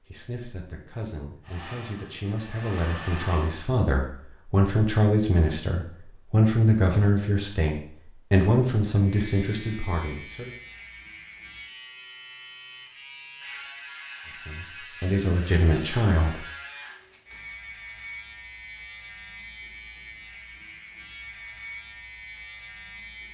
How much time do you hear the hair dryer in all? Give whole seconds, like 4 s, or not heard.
2 s.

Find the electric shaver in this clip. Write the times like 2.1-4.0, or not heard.
9.2-23.2.